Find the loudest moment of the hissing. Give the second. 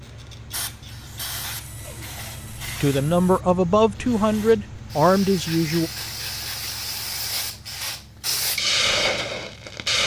9 s.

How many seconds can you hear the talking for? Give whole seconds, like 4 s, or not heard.
3 s.